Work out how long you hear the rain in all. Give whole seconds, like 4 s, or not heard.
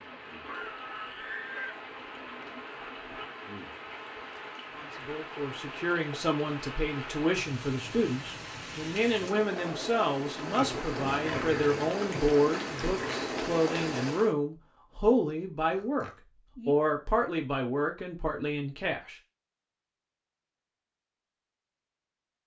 14 s.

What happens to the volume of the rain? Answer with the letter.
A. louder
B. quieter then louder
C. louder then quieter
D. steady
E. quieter
A.